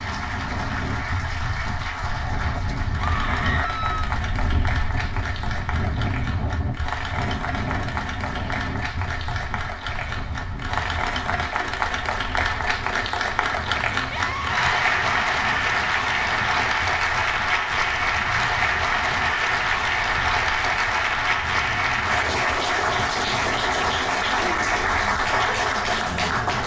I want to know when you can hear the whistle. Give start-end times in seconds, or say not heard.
not heard.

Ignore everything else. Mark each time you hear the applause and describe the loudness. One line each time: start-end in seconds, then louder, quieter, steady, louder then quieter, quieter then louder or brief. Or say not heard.
0.0-26.6 louder.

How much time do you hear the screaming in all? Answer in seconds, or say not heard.
2 s.